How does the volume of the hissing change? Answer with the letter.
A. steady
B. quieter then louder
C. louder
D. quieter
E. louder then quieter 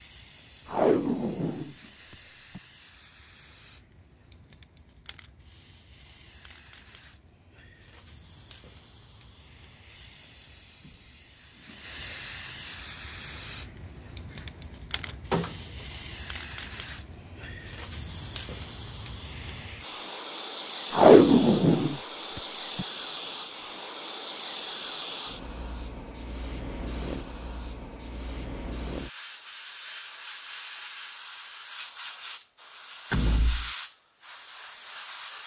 C.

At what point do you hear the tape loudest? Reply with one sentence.
The loudest moment of the tape is at 21 seconds.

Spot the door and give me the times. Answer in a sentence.
The door can be heard from 15.1 to 15.6 s and from 33.1 to 33.7 s.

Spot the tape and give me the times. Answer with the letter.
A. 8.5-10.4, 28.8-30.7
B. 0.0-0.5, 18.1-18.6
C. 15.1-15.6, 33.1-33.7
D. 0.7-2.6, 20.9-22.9
D.